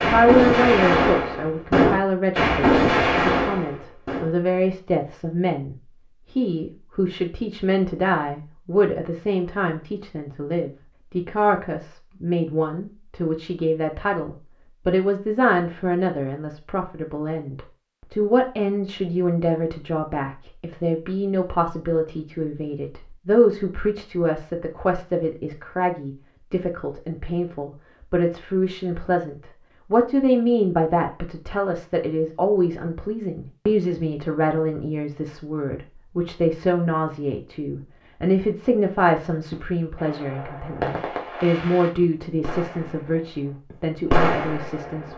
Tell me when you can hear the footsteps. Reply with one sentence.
You can't hear the footsteps here.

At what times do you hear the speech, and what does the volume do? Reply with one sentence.
The speech can be heard from 0.0 to 45.1 s, at a steady volume.